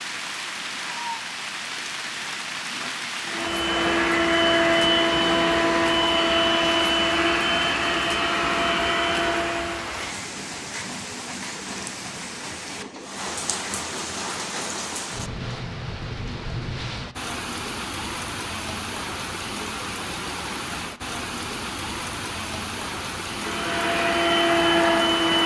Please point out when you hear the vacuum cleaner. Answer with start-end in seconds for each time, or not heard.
3.2-9.8, 23.3-25.4.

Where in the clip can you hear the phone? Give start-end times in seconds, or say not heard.
not heard.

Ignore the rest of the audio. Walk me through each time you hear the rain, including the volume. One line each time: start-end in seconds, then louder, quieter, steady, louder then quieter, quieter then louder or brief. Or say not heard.
0.0-25.4 steady.